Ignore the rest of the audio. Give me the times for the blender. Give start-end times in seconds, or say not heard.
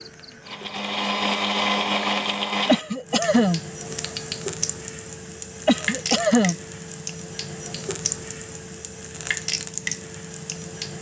0.0-2.8.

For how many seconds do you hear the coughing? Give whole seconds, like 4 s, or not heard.
2 s.